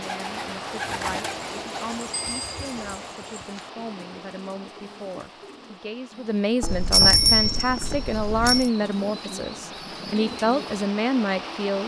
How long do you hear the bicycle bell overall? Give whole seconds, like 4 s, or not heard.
3 s.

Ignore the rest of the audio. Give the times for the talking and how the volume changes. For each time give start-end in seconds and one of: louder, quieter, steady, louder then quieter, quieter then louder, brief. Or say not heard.
0.0-11.8 louder.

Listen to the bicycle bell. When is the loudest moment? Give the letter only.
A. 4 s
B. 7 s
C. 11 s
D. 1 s
B.